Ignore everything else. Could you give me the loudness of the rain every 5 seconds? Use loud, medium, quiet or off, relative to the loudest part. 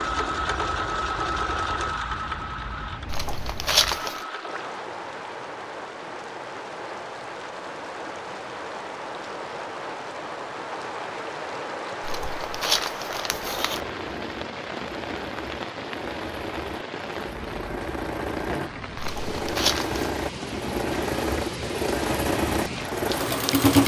medium, loud, loud, loud, loud.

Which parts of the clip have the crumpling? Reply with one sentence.
The crumpling can be heard from 3.0 to 4.2 s, from 12.0 to 13.8 s and from 18.9 to 20.1 s.